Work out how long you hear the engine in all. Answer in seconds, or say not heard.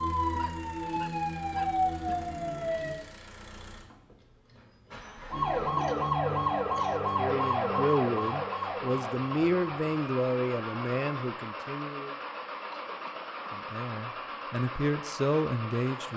16 s.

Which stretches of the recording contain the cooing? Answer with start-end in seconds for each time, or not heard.
not heard.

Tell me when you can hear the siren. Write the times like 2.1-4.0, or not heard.
0.0-3.0, 5.3-11.1.